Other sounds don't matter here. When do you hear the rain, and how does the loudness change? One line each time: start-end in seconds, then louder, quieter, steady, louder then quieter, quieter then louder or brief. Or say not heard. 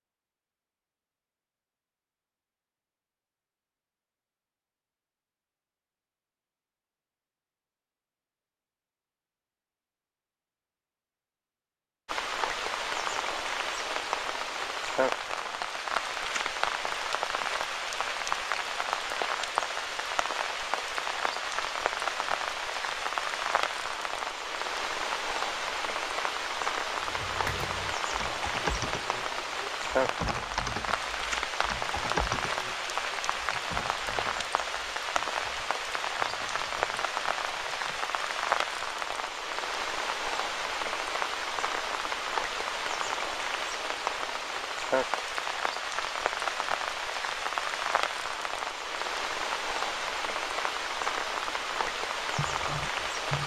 12.1-53.4 steady.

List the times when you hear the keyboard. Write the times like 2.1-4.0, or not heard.
27.0-38.0, 51.8-53.4.